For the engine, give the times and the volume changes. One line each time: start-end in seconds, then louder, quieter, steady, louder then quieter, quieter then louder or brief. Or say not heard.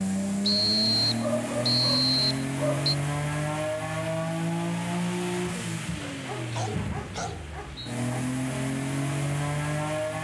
0.0-10.2 quieter then louder.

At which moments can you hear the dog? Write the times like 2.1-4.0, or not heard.
1.2-2.9, 6.0-8.2.